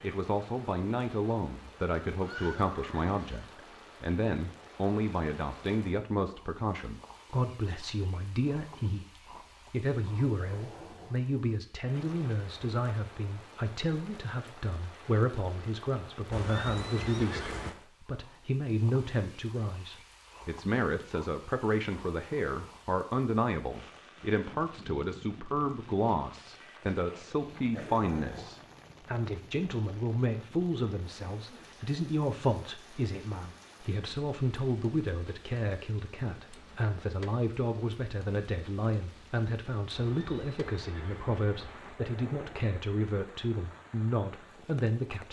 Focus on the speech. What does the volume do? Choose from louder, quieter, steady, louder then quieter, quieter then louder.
steady.